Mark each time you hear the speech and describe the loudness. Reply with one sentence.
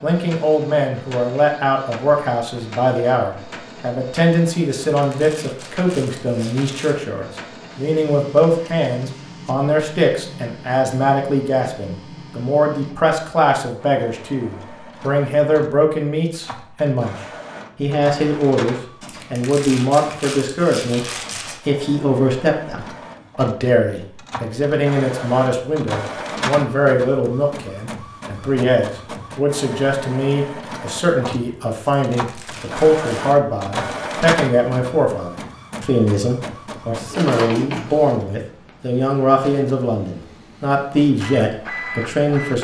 You can hear the speech from 0.0 to 17.1 s, at a steady volume; and from 17.8 to 42.5 s, at a steady volume.